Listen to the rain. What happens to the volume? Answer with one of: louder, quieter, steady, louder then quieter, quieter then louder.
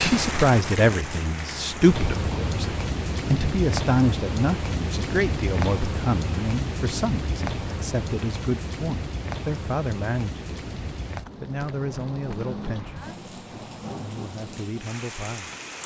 quieter.